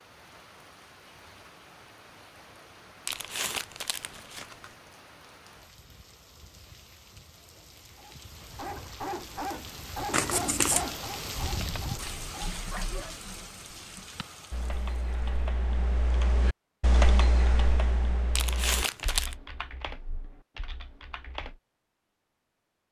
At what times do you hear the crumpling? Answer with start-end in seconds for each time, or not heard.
3.0-4.8, 10.1-10.8, 18.4-19.4.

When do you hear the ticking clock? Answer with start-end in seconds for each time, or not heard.
not heard.